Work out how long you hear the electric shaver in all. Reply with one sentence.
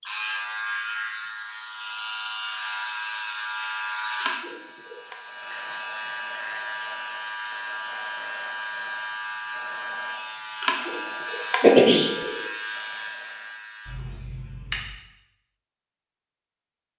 The electric shaver can be heard for 15 seconds in total.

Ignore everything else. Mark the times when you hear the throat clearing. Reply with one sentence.
You can hear the throat clearing from 4.2 to 5.2 s and from 10.6 to 12.4 s.